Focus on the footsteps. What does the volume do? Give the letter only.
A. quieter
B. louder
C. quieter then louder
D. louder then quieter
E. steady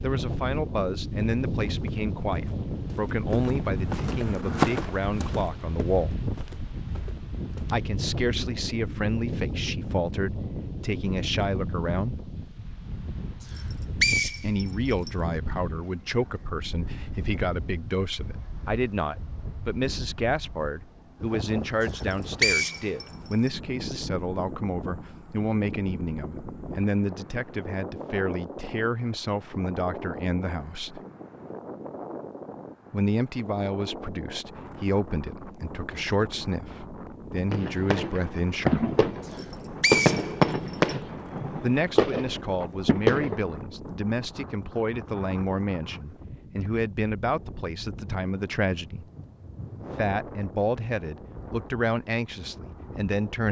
D.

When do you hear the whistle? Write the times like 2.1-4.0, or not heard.
13.6-15.1, 21.9-23.5, 39.3-41.0.